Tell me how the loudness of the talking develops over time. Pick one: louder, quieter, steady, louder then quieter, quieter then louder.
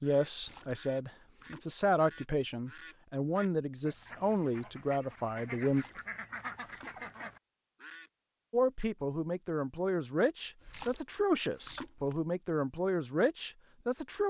steady.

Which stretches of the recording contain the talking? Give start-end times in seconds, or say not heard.
0.0-5.8, 8.5-14.2.